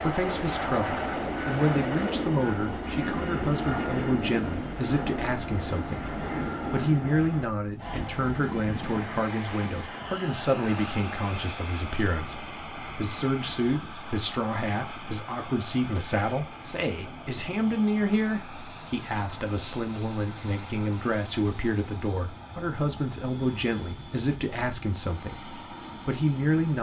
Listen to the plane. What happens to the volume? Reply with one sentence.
The volume of the plane goes down.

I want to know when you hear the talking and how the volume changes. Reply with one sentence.
The talking can be heard from 0.0 to 26.7 s, at a steady volume.